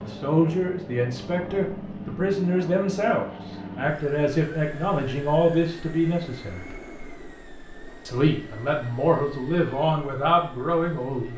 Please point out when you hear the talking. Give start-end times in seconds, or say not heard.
0.0-6.7, 8.1-11.3.